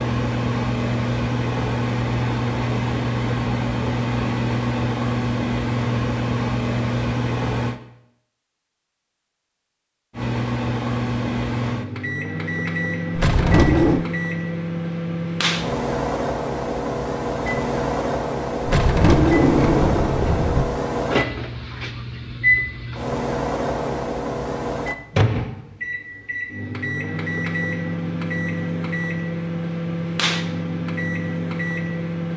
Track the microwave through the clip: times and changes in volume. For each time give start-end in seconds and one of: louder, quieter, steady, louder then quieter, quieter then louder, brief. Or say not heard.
0.0-7.8 steady
10.2-32.3 steady.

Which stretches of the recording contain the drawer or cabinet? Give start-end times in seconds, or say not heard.
13.2-14.1, 18.6-20.6.